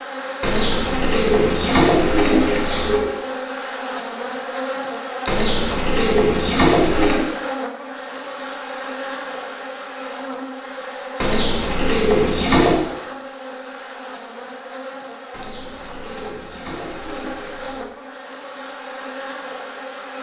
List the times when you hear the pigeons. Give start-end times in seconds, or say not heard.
0.4-3.1, 5.2-7.2, 11.2-12.8, 15.3-17.9.